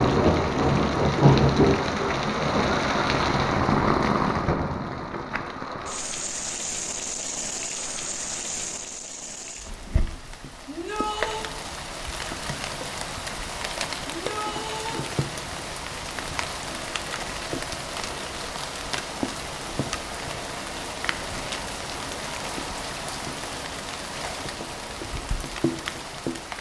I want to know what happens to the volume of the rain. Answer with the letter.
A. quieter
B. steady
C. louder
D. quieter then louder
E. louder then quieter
A.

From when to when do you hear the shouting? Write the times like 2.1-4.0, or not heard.
10.7-11.5, 14.1-15.1.